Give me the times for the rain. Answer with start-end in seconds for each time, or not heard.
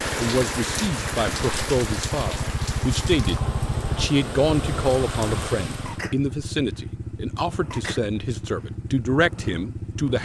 0.0-6.0.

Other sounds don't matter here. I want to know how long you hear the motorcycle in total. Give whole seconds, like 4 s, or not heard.
10 s.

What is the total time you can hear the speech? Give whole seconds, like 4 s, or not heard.
10 s.